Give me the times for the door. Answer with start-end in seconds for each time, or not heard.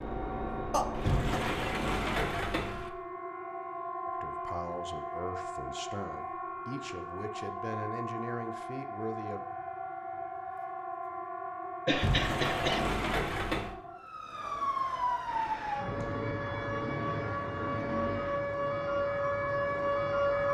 0.9-3.0, 11.9-13.8.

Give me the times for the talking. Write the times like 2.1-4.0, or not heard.
4.0-9.4.